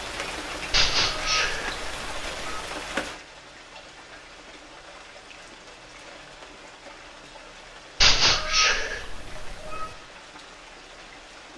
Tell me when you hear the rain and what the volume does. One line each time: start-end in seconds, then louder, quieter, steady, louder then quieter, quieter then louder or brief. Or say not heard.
0.0-11.5 quieter.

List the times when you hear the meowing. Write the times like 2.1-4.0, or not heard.
0.7-2.6, 8.0-9.9.